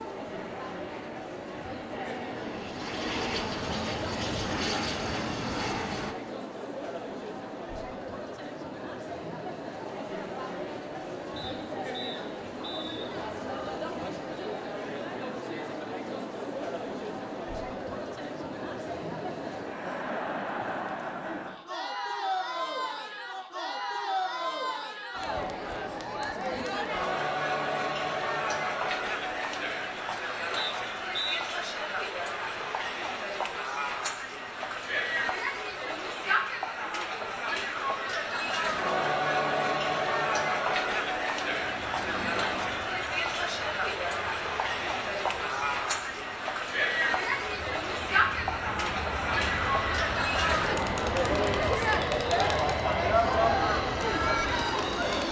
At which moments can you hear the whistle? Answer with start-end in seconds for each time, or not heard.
11.3-13.1, 30.6-31.4.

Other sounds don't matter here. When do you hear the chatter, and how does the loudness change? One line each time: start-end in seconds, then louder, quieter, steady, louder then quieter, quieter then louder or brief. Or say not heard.
0.0-55.2 louder.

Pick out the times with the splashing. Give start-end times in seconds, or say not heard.
41.5-42.8.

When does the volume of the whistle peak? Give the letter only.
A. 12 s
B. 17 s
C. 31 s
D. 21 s
C.